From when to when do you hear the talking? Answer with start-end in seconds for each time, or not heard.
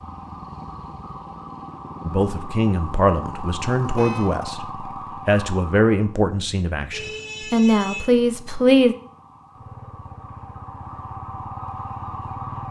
2.0-8.9.